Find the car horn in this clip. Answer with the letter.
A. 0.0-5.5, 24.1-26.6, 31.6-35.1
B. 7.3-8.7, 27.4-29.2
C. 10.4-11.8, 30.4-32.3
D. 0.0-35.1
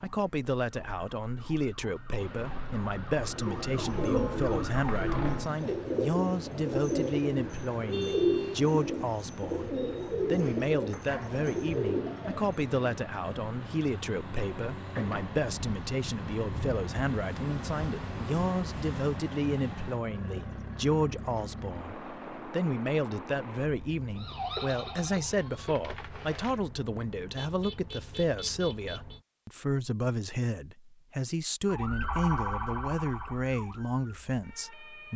B.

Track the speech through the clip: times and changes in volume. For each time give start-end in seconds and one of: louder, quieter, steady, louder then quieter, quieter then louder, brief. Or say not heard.
0.0-35.1 steady.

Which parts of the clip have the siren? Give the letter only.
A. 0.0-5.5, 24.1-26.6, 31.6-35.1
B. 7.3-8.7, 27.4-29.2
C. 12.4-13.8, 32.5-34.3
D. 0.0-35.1
A.